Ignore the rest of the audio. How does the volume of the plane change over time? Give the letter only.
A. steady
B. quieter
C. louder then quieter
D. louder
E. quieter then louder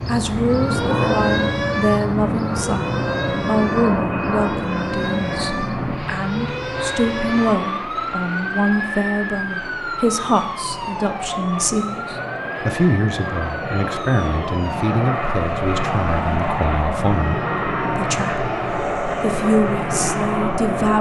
E.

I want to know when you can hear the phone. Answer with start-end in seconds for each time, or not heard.
not heard.